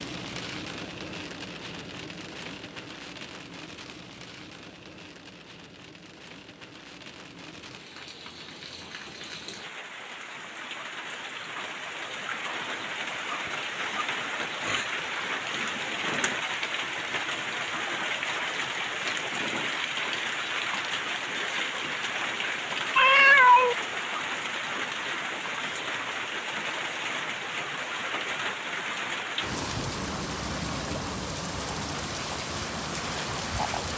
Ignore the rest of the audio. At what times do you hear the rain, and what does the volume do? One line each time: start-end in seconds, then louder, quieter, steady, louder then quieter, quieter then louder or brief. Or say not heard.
0.0-33.9 louder.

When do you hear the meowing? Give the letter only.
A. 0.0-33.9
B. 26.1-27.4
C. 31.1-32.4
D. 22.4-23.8
D.